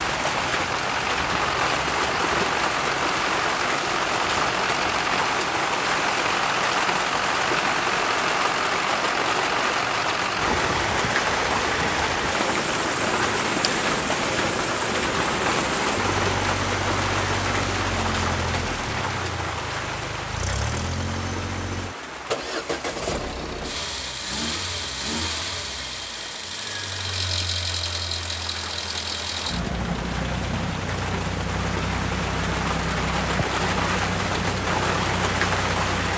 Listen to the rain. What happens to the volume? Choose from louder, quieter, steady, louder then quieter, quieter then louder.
quieter then louder.